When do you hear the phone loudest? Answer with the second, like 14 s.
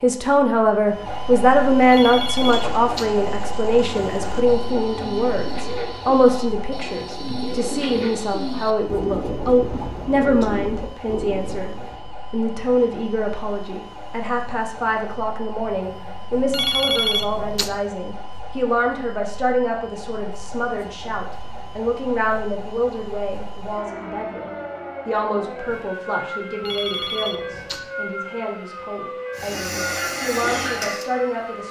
17 s.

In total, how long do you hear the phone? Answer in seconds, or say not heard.
4 s.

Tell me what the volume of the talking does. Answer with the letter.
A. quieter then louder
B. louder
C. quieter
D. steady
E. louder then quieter
C.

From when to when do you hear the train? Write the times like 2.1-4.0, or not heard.
29.4-31.6.